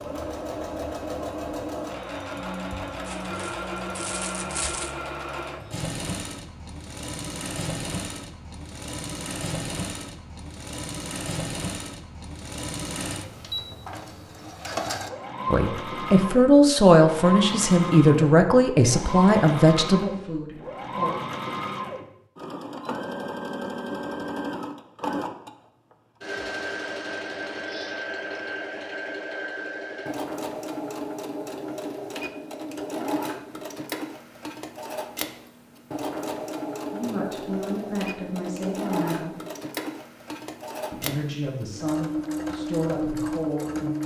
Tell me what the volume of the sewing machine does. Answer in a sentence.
The loudness of the sewing machine stays about the same.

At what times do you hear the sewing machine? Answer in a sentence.
The sewing machine can be heard from 0.0 to 44.0 s.